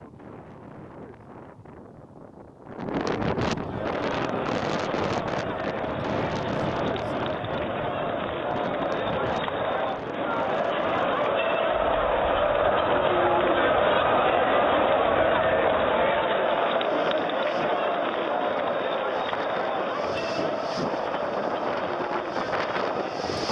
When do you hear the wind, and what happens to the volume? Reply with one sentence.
You can hear the wind from 0.0 to 23.4 s, getting quieter then louder.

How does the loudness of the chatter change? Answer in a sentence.
The volume of the chatter goes up, then down.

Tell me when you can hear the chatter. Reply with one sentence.
You can hear the chatter from 3.5 to 23.4 s.